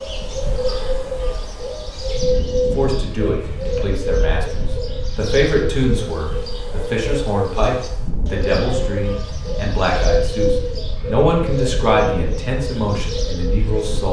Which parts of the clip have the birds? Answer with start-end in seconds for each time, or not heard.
0.0-14.0.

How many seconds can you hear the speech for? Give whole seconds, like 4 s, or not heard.
11 s.